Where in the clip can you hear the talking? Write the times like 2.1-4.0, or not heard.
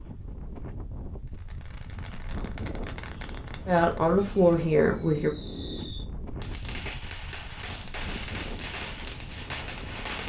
3.6-5.3.